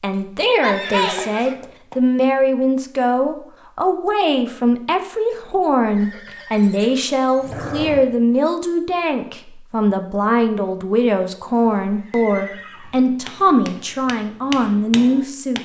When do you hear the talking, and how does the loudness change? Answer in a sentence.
The talking can be heard from 0.0 to 15.6 s, at a steady volume.